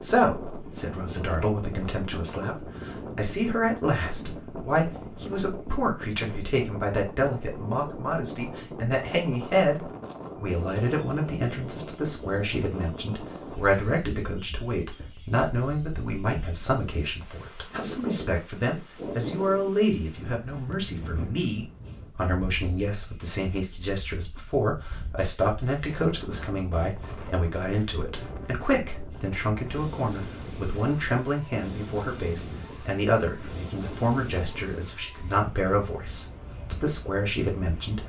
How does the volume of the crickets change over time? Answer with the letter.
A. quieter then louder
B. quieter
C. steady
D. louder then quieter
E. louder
E.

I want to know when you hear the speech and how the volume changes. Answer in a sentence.
You can hear the speech from 0.0 to 38.0 s, at a steady volume.